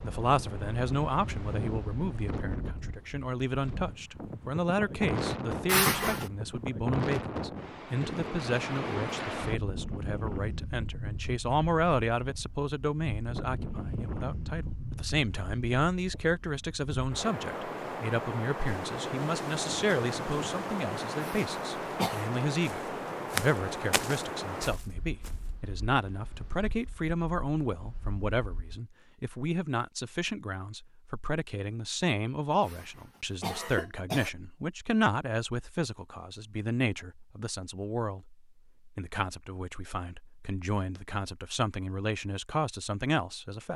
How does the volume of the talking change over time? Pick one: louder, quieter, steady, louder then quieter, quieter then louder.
steady.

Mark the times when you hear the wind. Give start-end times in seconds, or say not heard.
0.0-28.8.